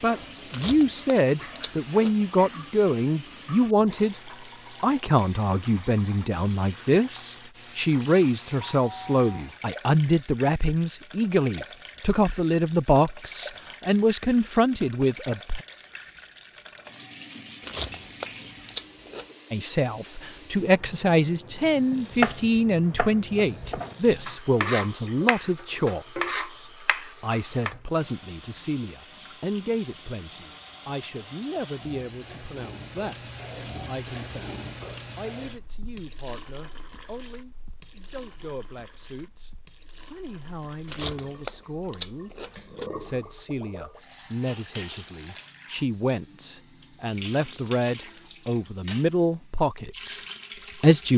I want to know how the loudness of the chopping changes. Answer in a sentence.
The loudness of the chopping goes up, then down.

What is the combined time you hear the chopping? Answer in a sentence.
The chopping can be heard for 6 seconds in total.